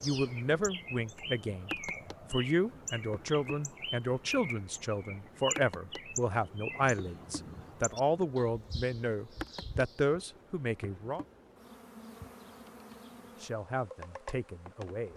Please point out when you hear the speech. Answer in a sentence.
You can hear the speech from 0.0 to 11.2 s and from 13.3 to 15.1 s.